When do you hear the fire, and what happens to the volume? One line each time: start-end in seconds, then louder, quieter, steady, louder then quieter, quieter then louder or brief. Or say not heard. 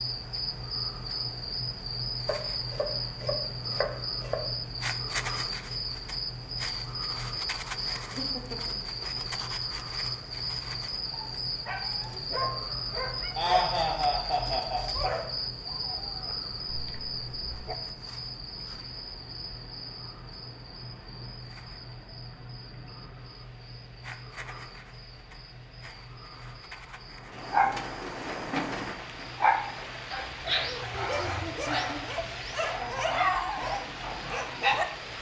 not heard.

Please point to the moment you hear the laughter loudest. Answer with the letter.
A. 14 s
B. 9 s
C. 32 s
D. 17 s
A.